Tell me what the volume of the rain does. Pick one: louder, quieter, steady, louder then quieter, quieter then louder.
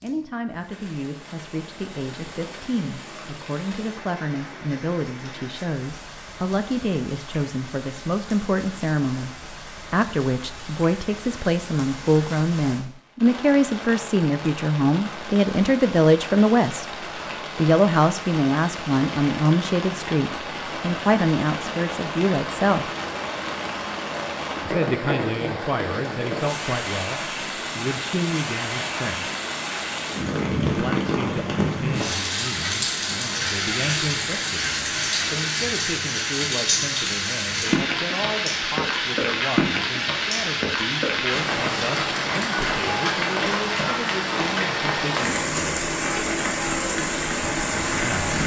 louder.